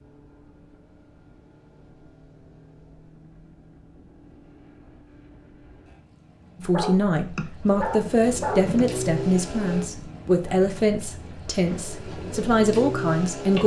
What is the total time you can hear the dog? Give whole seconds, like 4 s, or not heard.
2 s.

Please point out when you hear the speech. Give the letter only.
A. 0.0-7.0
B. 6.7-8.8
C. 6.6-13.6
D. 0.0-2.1
C.